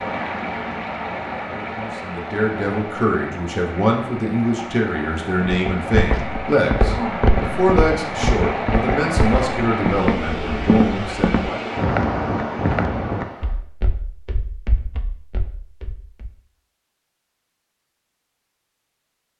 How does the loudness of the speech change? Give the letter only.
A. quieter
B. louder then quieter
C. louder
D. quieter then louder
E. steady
E.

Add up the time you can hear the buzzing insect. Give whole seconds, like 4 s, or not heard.
not heard.